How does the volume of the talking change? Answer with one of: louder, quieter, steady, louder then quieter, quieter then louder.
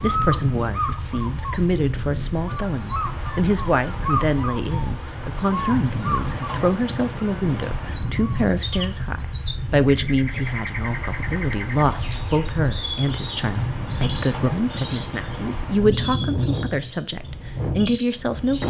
steady.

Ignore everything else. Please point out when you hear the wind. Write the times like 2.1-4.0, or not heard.
0.0-18.6.